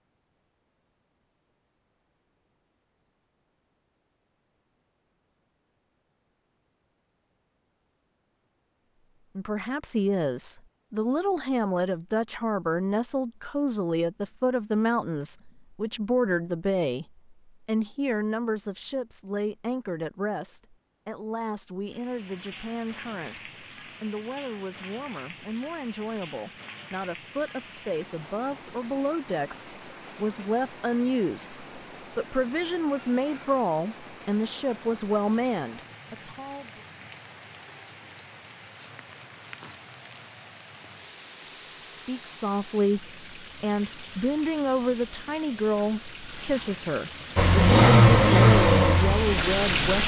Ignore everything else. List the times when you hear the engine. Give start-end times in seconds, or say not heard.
47.4-49.8.